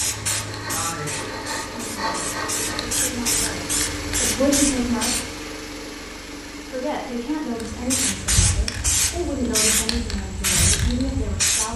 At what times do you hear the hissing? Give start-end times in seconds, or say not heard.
0.0-5.3, 7.5-11.7.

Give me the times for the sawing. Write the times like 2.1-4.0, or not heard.
0.0-2.9.